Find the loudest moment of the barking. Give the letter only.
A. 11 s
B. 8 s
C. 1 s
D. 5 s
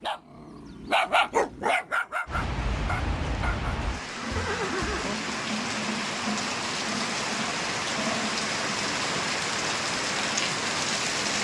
C.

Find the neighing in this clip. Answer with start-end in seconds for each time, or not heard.
4.1-5.2.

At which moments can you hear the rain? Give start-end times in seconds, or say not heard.
2.2-11.3.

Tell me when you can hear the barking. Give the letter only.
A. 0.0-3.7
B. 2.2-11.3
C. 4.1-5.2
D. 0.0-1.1
A.